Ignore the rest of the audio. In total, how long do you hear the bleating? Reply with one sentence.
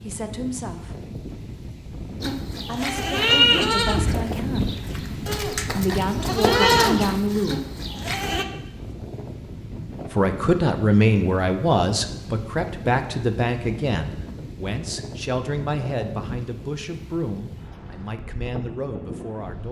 The bleating can be heard for 6 seconds in total.